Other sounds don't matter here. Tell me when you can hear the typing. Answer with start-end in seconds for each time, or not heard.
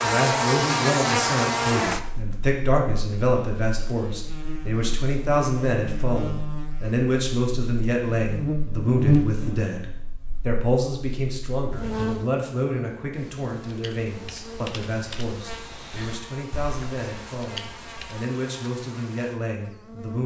13.1-18.2.